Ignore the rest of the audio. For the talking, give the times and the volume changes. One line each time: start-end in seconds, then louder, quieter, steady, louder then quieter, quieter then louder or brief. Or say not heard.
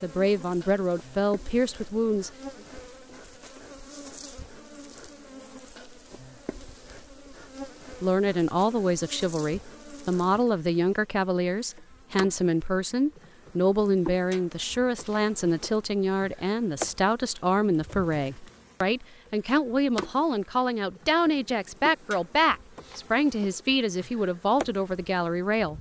0.0-2.3 brief
8.0-25.7 steady.